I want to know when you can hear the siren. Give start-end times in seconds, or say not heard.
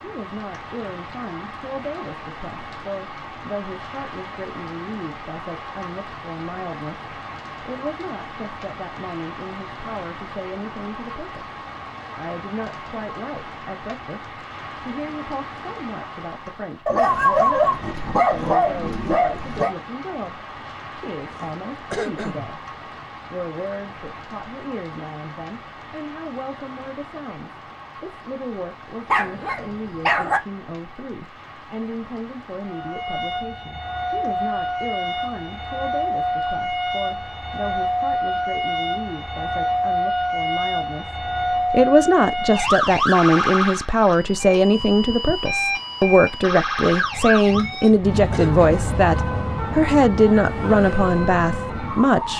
32.6-52.3.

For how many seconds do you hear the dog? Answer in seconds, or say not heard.
4 s.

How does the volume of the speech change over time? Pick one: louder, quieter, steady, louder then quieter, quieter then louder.
louder.